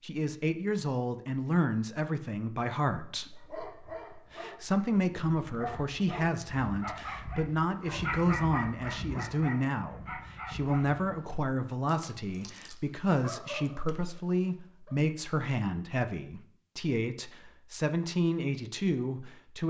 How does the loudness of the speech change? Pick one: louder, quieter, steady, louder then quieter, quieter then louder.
steady.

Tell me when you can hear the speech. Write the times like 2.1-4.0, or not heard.
0.0-19.6.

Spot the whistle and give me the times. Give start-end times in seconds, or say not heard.
not heard.